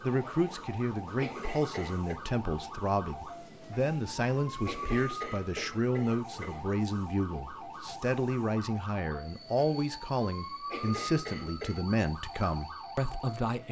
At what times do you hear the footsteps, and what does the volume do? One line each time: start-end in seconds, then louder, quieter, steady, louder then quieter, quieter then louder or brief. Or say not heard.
not heard.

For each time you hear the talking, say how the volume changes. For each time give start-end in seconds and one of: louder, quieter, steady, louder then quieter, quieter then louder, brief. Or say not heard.
0.0-13.6 steady.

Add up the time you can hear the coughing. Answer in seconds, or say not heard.
4 s.